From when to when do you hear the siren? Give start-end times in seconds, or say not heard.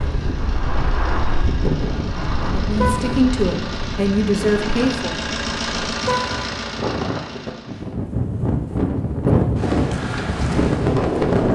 not heard.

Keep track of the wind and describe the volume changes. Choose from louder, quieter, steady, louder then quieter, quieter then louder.
quieter then louder.